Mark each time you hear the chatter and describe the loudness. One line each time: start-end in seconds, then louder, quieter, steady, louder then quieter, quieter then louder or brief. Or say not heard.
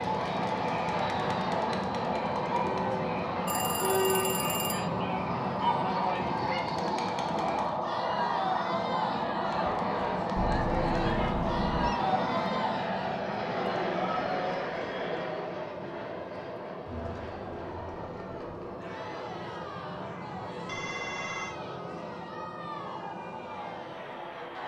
0.0-24.6 quieter.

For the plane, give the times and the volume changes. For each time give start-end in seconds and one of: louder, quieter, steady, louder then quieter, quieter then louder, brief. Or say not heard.
0.0-24.6 quieter.